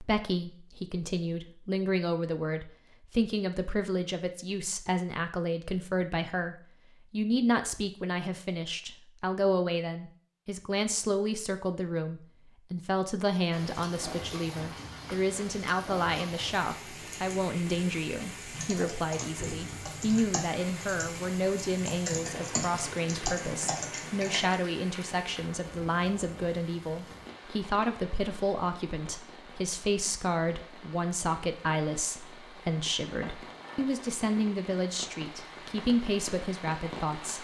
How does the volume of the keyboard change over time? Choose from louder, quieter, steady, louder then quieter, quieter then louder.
louder.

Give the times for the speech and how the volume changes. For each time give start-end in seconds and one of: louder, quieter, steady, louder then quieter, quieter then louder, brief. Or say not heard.
0.0-37.3 steady.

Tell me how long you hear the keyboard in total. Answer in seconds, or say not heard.
6 s.